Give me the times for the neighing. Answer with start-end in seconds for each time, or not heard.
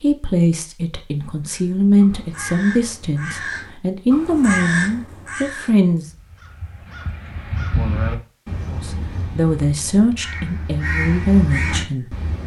not heard.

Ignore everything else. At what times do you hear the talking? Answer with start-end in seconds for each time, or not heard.
0.0-6.0, 8.7-12.1.